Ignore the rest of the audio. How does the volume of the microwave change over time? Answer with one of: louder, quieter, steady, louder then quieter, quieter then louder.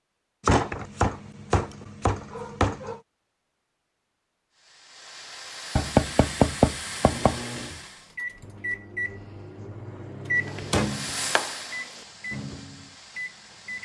louder then quieter.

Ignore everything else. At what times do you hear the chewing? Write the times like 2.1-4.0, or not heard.
not heard.